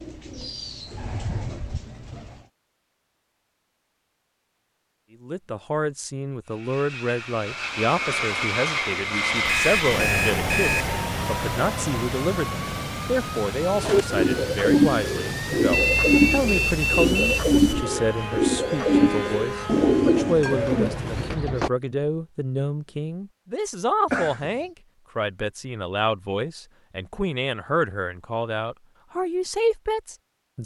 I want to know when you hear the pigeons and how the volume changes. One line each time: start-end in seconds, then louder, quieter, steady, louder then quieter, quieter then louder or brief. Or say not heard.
0.0-2.5 brief
13.7-21.7 steady.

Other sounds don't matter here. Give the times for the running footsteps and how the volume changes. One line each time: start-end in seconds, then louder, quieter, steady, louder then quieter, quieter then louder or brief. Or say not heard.
not heard.